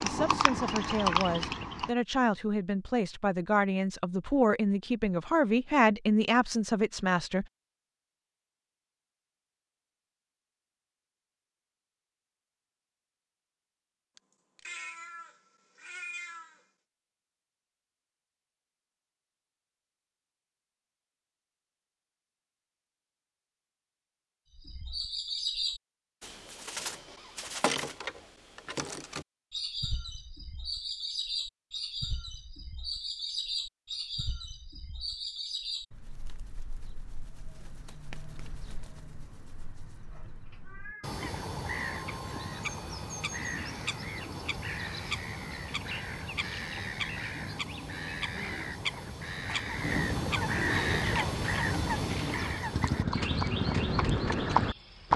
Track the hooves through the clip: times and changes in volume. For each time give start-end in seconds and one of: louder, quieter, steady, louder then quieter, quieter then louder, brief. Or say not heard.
0.0-1.9 brief
51.0-55.1 louder.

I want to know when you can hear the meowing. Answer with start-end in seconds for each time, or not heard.
14.2-16.6, 40.1-41.2.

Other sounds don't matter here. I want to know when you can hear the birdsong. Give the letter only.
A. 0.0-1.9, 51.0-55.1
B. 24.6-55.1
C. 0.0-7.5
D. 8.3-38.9
B.